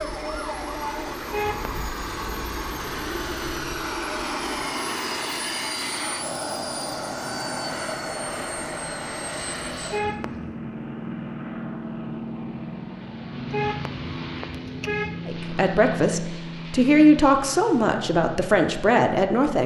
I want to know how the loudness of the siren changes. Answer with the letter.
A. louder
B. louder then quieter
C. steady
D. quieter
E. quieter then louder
D.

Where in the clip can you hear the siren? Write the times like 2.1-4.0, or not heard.
0.0-4.7.